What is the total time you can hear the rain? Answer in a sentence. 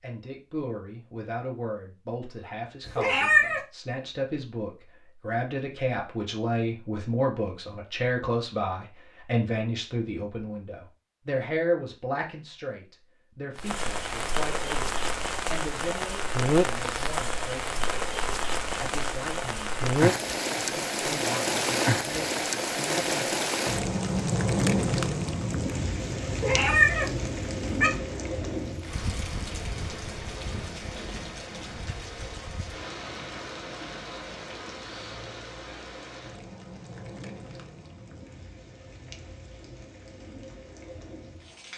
You can hear the rain for 28 seconds altogether.